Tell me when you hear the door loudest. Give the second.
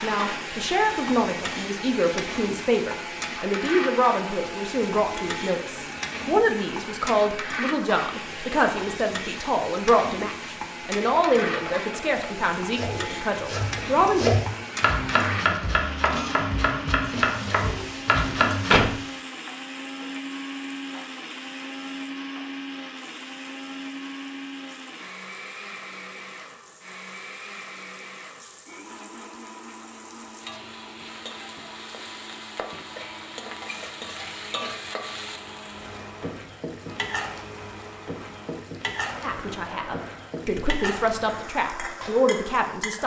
19 s.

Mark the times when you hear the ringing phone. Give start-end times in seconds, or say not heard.
not heard.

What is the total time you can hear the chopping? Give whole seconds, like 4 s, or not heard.
8 s.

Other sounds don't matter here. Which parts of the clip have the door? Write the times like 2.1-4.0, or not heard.
17.6-19.0.